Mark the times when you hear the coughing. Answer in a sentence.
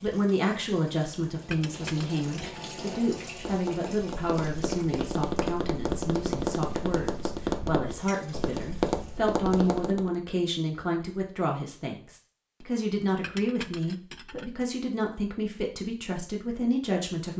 You can't hear the coughing here.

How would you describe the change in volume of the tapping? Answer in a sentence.
The loudness of the tapping goes up.